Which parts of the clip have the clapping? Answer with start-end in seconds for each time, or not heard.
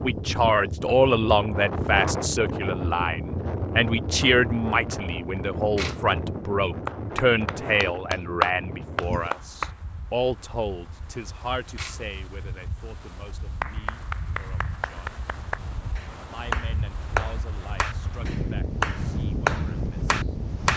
6.8-9.8, 13.6-20.7.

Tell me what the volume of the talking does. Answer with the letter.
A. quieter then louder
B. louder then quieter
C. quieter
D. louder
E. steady
C.